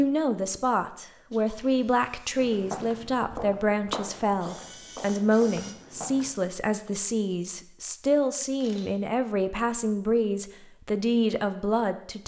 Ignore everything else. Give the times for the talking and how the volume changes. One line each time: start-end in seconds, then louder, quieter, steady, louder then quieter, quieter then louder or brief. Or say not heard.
0.0-12.2 steady.